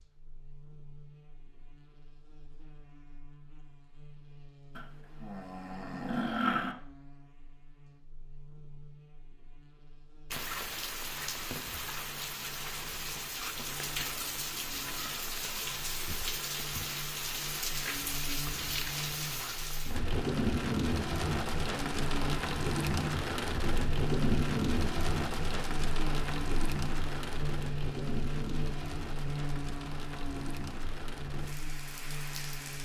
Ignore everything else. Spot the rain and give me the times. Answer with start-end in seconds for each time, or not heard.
10.3-32.7.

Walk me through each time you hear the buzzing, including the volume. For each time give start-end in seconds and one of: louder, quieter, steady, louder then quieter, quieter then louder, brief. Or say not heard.
0.0-32.7 louder.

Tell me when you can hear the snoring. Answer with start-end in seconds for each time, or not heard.
4.8-6.8.